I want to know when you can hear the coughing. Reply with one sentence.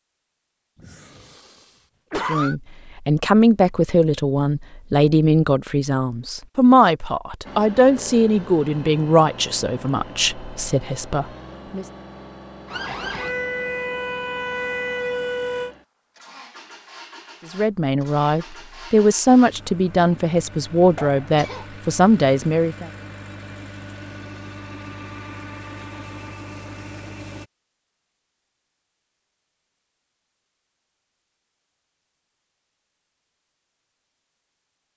You can hear the coughing from 0.8 to 2.5 s and from 20.9 to 21.6 s.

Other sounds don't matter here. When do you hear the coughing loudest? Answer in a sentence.
The volume of the coughing peaks at 2 seconds.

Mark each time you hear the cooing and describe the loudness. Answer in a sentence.
You can't hear the cooing here.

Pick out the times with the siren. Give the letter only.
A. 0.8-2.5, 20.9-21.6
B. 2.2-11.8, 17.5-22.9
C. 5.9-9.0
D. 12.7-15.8
D.